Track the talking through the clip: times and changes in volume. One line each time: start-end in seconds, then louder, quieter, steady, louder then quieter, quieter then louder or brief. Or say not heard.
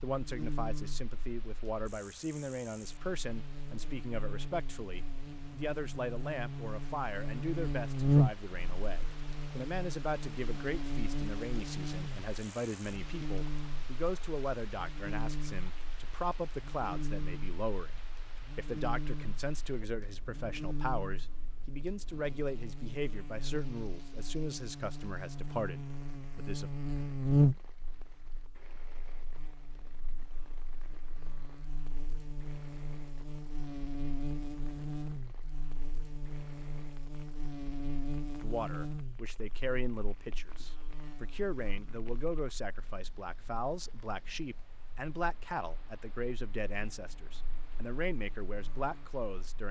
0.0-26.7 steady
38.4-49.6 steady.